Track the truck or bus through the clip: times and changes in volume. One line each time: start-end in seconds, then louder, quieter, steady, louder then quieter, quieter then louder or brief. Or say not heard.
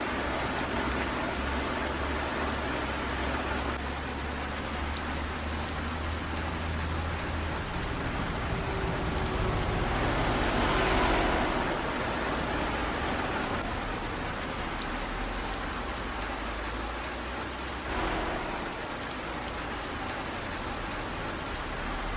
0.2-22.1 louder then quieter.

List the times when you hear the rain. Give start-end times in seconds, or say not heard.
0.0-22.1.